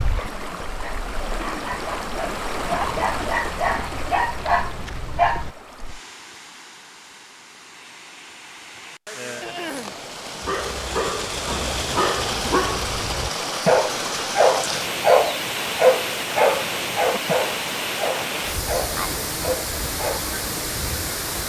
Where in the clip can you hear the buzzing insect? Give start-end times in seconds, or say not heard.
not heard.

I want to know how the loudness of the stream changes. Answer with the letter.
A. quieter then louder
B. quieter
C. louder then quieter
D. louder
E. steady
A.